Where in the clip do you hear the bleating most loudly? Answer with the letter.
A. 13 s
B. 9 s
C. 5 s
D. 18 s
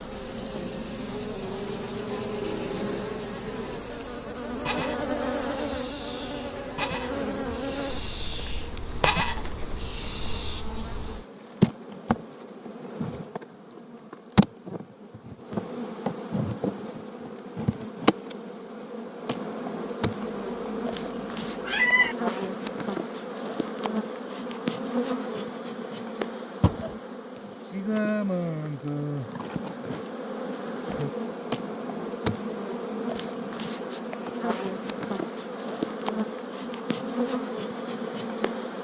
B.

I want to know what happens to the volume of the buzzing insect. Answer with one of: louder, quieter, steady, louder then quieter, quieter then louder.
steady.